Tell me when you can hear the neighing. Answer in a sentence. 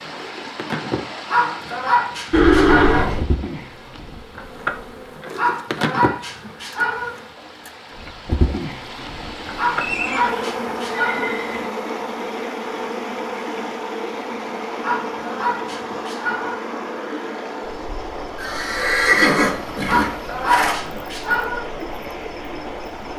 You can hear the neighing from 2.3 to 3.2 s, from 9.8 to 11.7 s and from 18.4 to 20.8 s.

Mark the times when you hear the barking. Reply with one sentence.
The barking can be heard from 1.2 to 3.0 s, from 5.3 to 7.1 s, from 9.6 to 11.3 s, from 14.8 to 16.6 s and from 19.9 to 21.6 s.